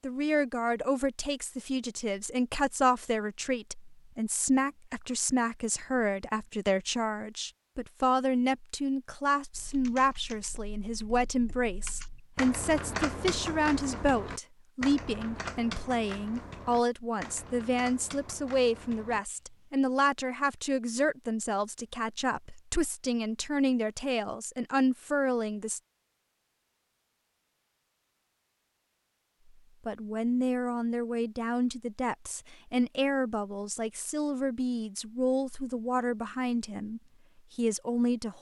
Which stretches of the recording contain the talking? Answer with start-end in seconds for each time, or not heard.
0.0-25.8, 29.9-38.3.